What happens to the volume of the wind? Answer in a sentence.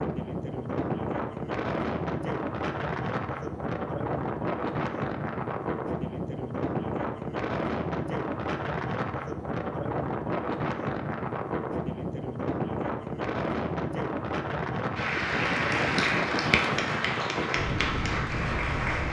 The volume of the wind stays about the same.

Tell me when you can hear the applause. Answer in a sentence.
You can hear the applause from 14.9 to 19.0 s.